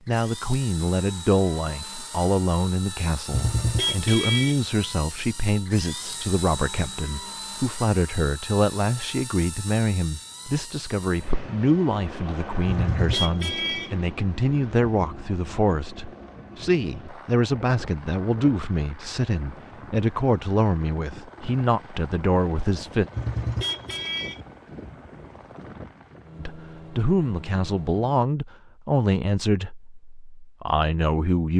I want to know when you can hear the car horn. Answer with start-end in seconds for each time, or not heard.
3.3-4.6, 12.7-13.9, 23.1-24.4.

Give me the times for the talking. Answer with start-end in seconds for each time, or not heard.
0.1-23.1, 26.4-31.5.